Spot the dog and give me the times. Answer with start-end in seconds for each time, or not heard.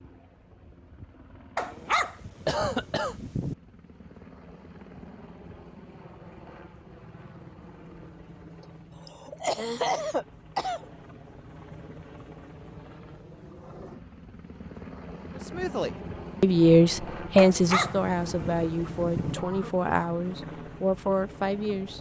1.6-3.5, 17.4-19.4.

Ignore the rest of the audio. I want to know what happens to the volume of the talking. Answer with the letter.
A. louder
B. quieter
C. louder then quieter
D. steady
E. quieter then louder
B.